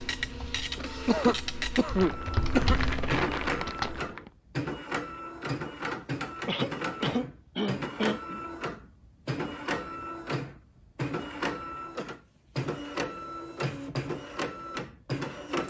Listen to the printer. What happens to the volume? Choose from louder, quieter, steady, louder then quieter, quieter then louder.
steady.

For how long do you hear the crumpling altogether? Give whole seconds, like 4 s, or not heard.
2 s.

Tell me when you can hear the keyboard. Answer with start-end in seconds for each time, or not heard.
0.0-4.1.